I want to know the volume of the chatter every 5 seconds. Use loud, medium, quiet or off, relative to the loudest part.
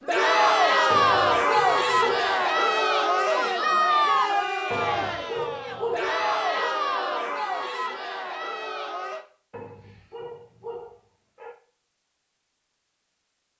loud, medium, off.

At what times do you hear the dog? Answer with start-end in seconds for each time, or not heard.
0.9-2.4, 4.7-6.7, 9.5-11.6.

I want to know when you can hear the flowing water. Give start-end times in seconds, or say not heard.
not heard.